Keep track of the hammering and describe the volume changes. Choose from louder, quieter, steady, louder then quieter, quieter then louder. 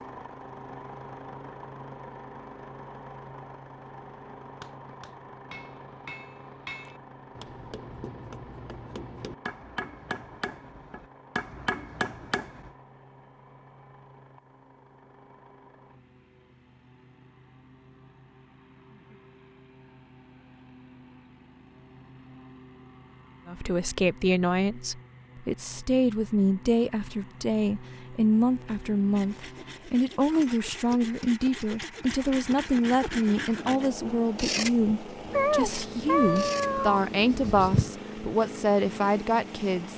louder.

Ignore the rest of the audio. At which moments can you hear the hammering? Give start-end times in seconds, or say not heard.
4.6-12.7.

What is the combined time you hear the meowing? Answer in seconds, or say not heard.
3 s.